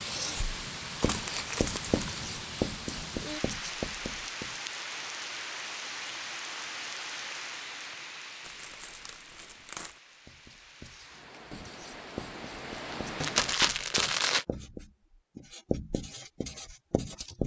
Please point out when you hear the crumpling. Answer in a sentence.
You can hear the crumpling from 1.0 to 2.2 s, from 8.4 to 10.0 s and from 13.2 to 14.4 s.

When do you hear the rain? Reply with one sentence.
You can hear the rain from 0.0 to 13.6 s.